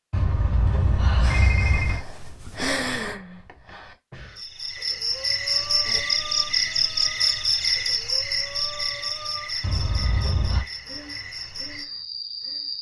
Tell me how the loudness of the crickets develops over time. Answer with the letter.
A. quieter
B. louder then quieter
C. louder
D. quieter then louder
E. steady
A.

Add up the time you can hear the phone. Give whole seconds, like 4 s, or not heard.
3 s.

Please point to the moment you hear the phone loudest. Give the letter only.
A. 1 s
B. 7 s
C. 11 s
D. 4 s
A.